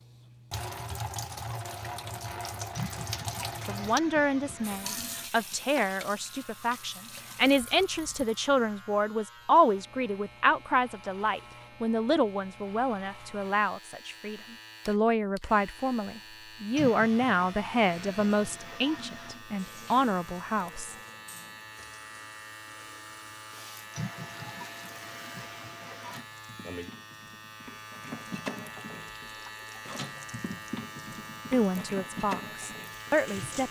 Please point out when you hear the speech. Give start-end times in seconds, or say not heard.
3.6-20.9, 31.5-33.6.